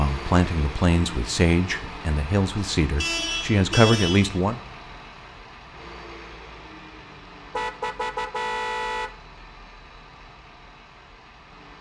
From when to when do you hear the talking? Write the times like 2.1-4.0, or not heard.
0.0-4.6.